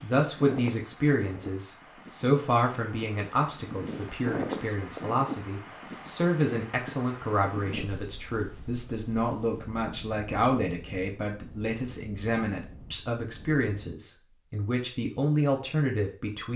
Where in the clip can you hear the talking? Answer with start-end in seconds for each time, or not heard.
0.0-16.5.